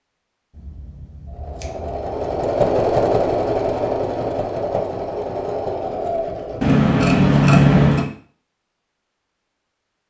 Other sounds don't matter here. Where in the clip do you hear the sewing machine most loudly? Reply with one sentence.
The loudest moment of the sewing machine is at 3 seconds.